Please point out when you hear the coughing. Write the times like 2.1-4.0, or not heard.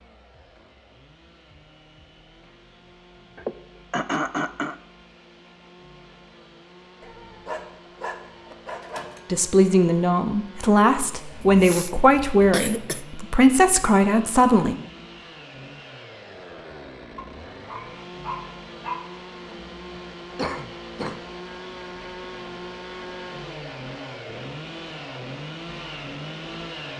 3.4-4.8, 11.3-13.1, 19.4-21.2.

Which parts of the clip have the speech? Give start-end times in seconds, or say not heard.
9.3-14.8.